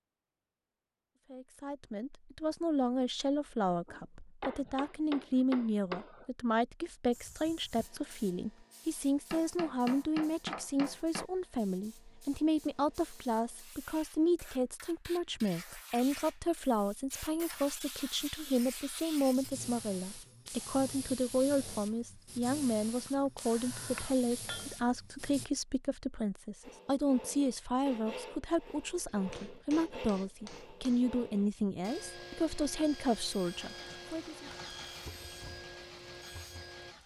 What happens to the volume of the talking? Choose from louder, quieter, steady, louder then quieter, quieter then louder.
steady.